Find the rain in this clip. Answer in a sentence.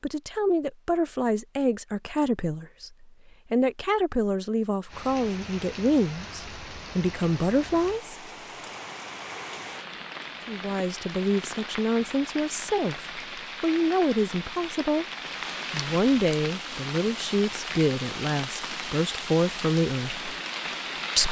You can hear the rain from 4.8 to 21.2 s.